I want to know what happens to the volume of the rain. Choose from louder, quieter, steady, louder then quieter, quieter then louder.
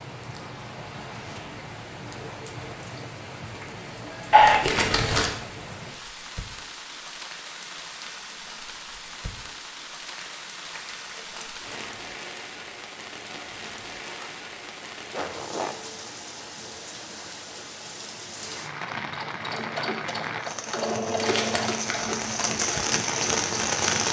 louder.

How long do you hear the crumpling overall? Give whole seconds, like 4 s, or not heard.
4 s.